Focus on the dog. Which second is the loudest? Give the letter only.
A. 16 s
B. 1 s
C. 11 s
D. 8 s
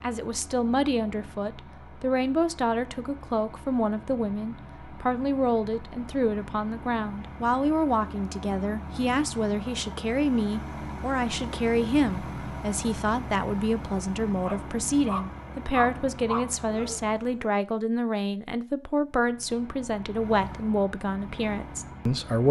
A.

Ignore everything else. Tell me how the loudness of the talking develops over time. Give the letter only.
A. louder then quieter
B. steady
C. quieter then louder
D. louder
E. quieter
B.